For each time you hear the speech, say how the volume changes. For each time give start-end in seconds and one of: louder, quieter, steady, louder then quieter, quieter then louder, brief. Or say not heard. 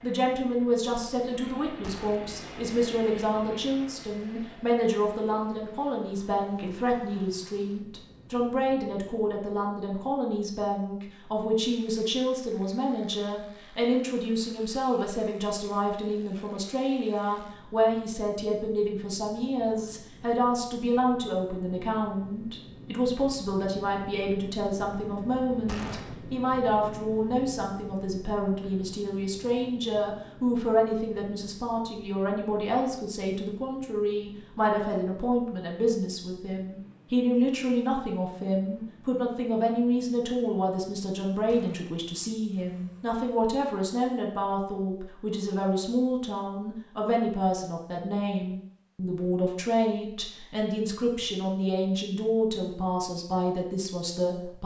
0.0-54.6 steady.